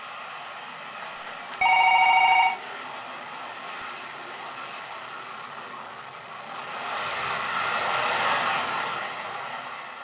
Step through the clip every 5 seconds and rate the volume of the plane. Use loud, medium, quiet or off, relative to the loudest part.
medium, loud.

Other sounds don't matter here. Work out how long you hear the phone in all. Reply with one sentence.
The phone can be heard for 3 seconds in total.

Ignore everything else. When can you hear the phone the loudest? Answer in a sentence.
The loudest moment of the phone is at 2 seconds.